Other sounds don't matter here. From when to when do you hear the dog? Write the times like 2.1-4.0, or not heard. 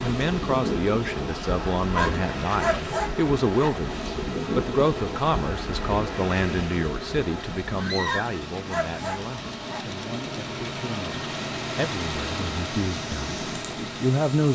1.9-3.8, 8.1-9.8.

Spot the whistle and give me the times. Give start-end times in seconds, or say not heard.
not heard.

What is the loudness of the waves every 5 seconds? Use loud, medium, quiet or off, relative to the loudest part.
loud, loud, medium.